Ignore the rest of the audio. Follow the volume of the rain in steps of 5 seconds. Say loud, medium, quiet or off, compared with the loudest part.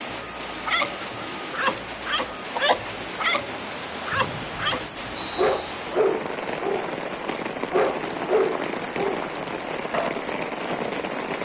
medium, loud, loud.